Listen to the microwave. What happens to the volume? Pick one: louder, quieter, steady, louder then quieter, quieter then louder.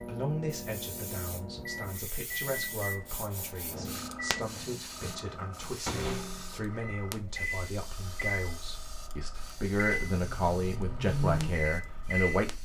louder.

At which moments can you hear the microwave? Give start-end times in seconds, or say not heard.
0.0-12.6.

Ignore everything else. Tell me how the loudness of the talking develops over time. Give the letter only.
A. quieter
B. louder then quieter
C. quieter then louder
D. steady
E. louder
E.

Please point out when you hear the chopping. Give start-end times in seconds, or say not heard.
not heard.